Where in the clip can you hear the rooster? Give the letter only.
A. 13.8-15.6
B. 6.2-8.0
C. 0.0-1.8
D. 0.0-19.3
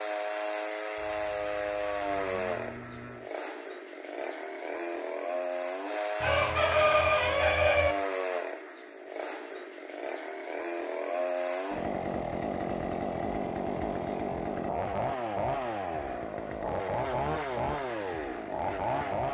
B.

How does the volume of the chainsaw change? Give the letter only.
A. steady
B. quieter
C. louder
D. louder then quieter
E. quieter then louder
A.